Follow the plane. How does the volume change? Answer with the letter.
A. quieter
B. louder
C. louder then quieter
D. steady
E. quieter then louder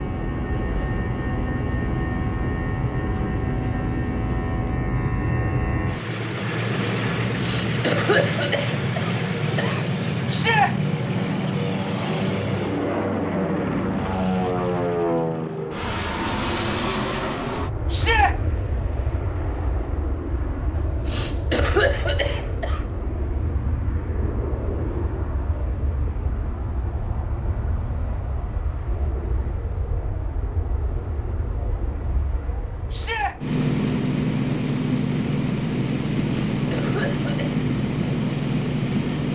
E.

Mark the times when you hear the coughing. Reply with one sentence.
You can hear the coughing from 7.2 to 9.8 s, from 20.8 to 22.9 s and from 36.2 to 37.6 s.